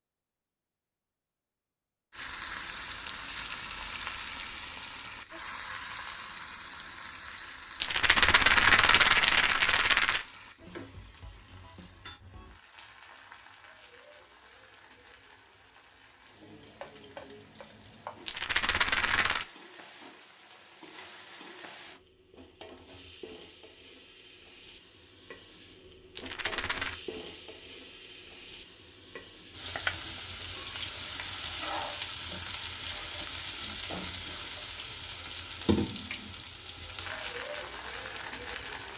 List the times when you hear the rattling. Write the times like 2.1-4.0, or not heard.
7.8-10.2, 18.2-19.4, 26.1-26.9.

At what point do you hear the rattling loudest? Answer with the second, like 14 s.
9 s.